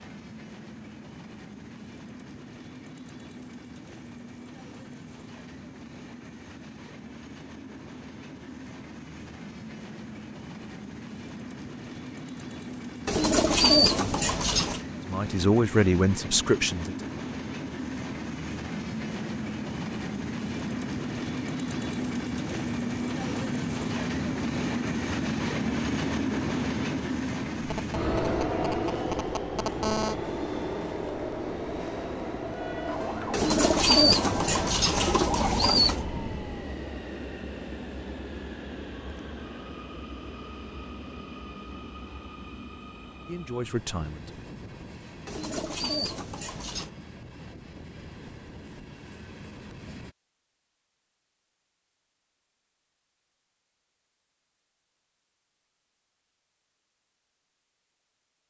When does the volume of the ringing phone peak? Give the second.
30 s.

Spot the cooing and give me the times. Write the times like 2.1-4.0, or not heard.
13.1-14.8, 33.3-36.0, 45.2-46.9.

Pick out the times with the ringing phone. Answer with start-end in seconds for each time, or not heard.
27.6-30.1.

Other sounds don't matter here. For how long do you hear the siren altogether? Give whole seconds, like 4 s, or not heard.
4 s.